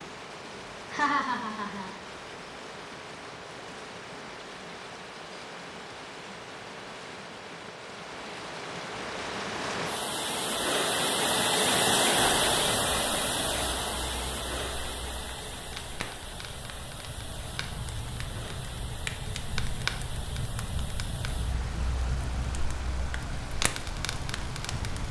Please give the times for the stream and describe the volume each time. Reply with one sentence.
The stream can be heard from 0.0 to 25.0 s, getting louder then quieter.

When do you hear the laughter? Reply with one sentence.
You can hear the laughter from 0.9 to 1.9 s.